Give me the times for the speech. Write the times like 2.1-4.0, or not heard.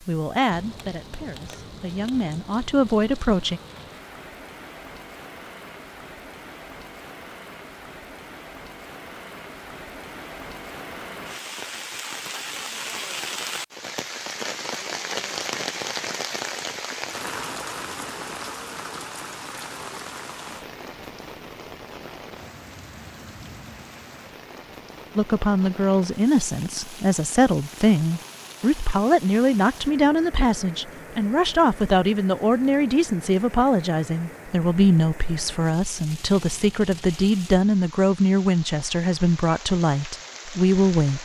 0.1-3.6, 25.1-41.2.